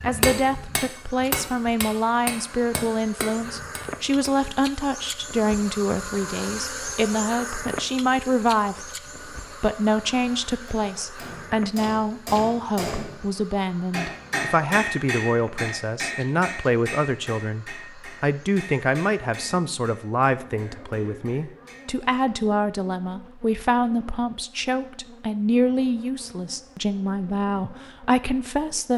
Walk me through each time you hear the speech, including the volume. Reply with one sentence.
The speech can be heard from 0.0 to 8.8 s, at a steady volume; and from 9.5 to 28.9 s, at a steady volume.